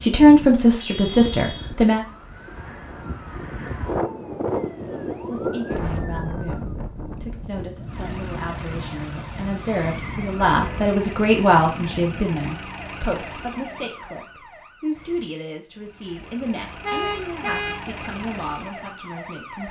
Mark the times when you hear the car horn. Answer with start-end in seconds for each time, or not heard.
0.8-1.8, 10.6-11.0, 16.8-17.9.